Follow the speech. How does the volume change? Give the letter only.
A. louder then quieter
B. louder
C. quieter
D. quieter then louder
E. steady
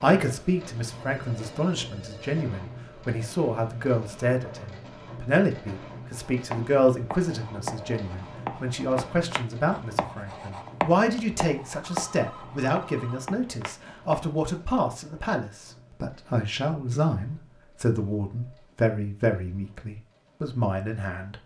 E.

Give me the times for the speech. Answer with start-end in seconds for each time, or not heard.
0.0-21.4.